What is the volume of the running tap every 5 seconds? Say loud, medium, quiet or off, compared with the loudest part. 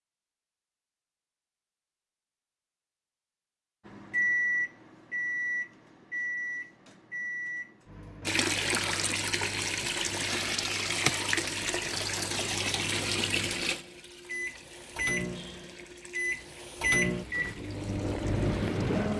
off, loud, loud, quiet.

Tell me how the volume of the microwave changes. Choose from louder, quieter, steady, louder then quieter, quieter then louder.
quieter then louder.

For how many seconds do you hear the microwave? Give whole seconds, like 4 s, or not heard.
15 s.